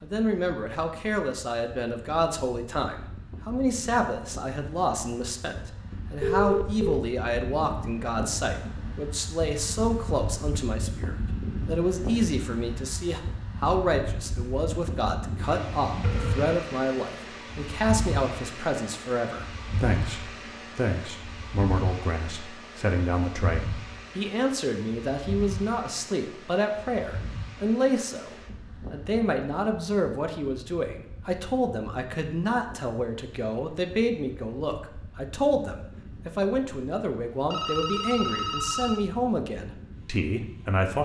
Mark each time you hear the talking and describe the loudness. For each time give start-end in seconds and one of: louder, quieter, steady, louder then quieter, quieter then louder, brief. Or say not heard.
0.0-41.0 steady.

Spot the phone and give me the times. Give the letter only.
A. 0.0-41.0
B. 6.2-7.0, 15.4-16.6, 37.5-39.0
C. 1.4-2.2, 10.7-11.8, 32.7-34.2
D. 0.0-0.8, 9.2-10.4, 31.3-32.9
B.